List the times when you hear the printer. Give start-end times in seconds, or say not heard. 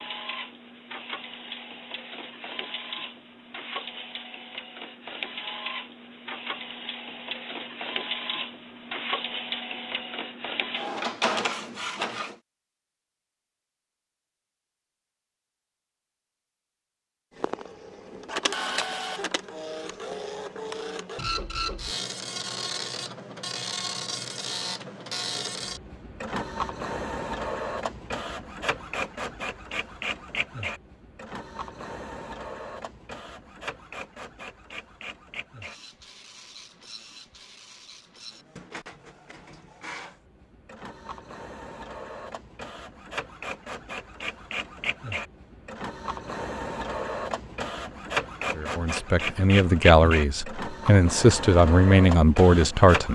0.0-12.3, 17.4-53.1.